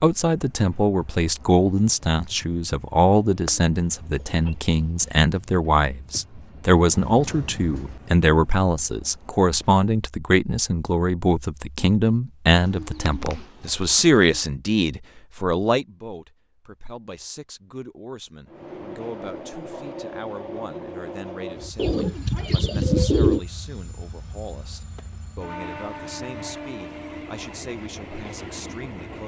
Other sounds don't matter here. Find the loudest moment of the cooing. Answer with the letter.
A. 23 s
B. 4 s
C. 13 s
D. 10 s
A.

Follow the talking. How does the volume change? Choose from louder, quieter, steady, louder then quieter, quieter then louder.
quieter.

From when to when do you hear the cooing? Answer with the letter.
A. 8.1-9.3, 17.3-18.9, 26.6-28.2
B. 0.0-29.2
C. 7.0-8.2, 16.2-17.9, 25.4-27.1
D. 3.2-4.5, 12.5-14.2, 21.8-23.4
D.